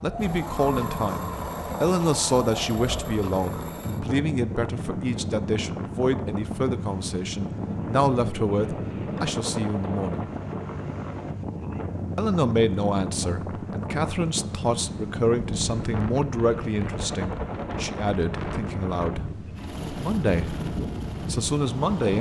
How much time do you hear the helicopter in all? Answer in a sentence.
The helicopter can be heard for 22 seconds in total.